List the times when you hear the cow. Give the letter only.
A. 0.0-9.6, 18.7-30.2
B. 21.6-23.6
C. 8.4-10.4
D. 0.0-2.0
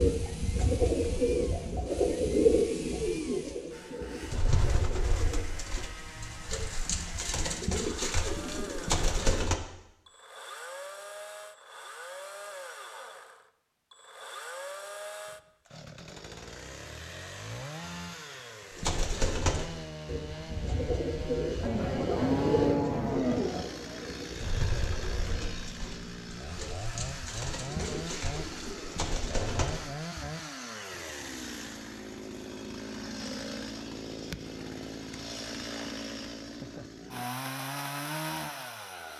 B.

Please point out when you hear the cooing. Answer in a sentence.
The cooing can be heard from 0.0 to 9.6 s and from 18.7 to 30.2 s.